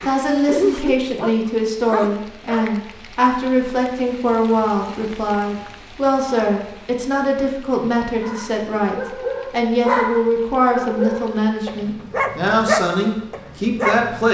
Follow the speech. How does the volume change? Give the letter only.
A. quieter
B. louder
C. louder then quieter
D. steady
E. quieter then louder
D.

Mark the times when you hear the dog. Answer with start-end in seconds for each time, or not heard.
0.0-2.6, 8.2-14.3.